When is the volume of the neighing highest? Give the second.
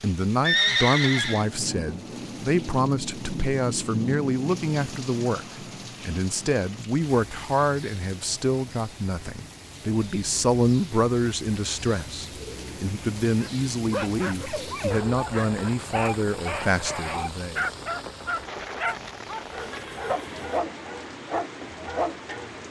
1 s.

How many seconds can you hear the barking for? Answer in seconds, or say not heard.
9 s.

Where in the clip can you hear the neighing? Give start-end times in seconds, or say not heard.
0.4-1.4, 19.3-20.6.